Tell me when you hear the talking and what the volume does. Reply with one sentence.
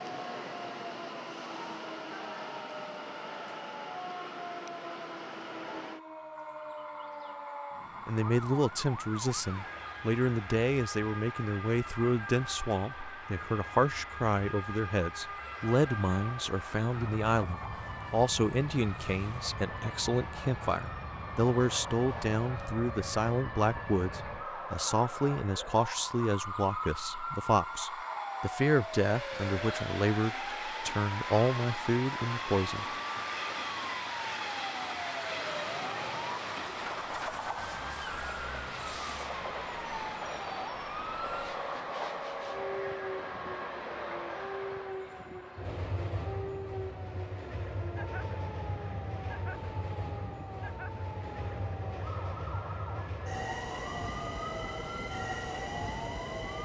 The talking can be heard from 8.1 to 32.9 s, at a steady volume.